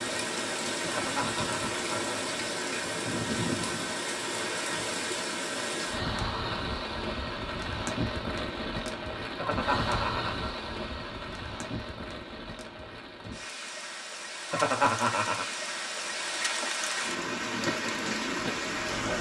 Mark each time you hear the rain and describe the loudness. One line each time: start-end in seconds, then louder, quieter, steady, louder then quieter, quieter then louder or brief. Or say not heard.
0.0-19.1 quieter then louder.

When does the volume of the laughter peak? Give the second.
15 s.